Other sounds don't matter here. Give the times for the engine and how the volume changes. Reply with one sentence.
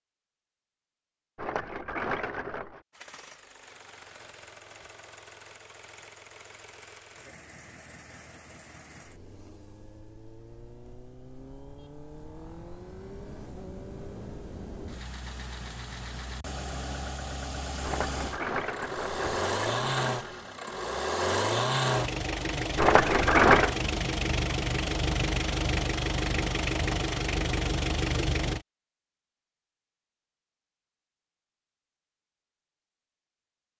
You can hear the engine from 2.9 to 28.6 s, getting louder.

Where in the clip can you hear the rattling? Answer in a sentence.
You can hear the rattling from 1.4 to 2.8 s, from 17.8 to 20.1 s and from 22.8 to 23.8 s.